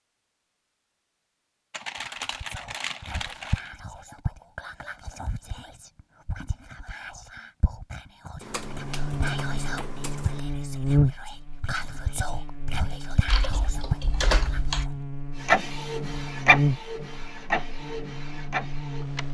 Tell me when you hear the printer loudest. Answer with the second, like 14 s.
16 s.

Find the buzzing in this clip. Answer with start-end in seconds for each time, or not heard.
8.5-19.2.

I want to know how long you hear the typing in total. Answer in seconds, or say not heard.
6 s.